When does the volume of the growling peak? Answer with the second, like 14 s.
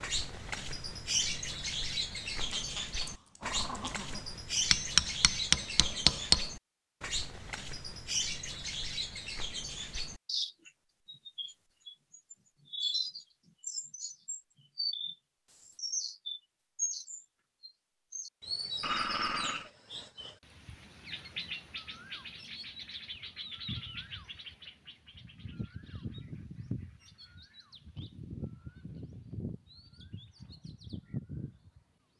19 s.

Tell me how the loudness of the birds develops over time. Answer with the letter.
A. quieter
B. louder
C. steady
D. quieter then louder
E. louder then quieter
A.